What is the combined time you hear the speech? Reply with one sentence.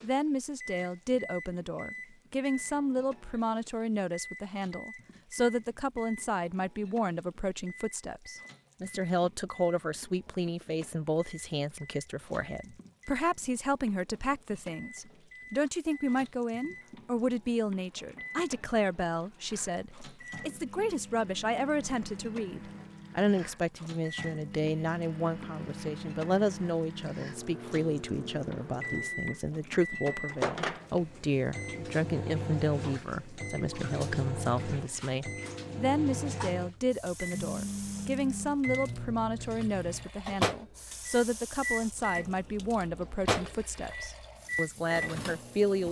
You can hear the speech for 46 seconds altogether.